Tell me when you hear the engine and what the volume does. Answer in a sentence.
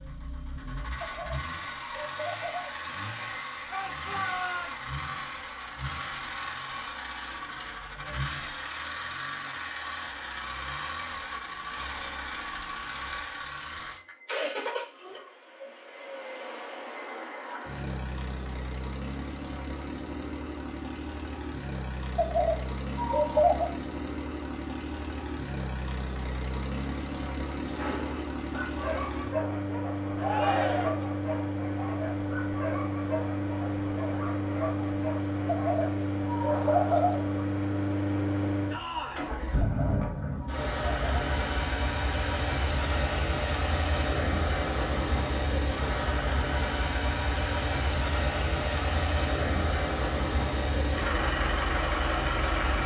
You can hear the engine from 0.0 to 52.8 s, getting louder.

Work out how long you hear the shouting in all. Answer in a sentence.
You can hear the shouting for 3 seconds altogether.